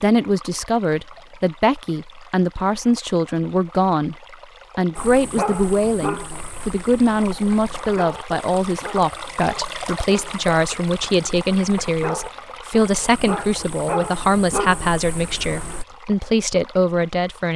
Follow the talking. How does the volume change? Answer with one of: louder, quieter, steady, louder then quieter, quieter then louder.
steady.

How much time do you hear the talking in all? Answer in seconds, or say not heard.
17 s.